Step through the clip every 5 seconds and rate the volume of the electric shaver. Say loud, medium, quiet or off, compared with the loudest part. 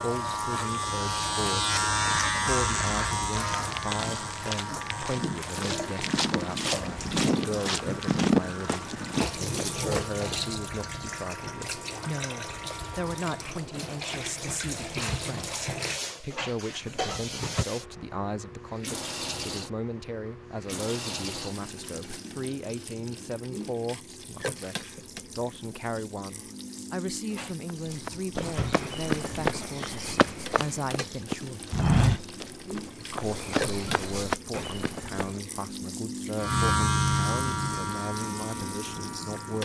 loud, quiet, quiet, off, off, off, off, loud.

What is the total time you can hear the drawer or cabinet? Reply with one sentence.
You can hear the drawer or cabinet for 3 seconds altogether.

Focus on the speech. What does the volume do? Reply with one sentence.
The volume of the speech stays about the same.